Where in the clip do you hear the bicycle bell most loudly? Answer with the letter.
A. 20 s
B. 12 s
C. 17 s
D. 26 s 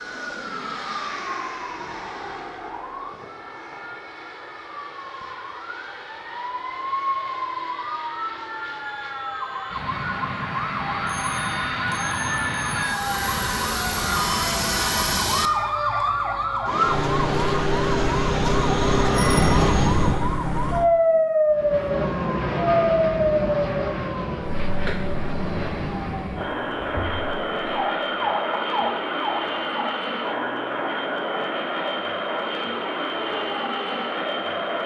A.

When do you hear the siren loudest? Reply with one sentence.
The volume of the siren peaks at 21 seconds.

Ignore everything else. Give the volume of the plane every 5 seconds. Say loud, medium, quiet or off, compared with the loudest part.
medium, quiet, loud, loud, loud, loud, loud.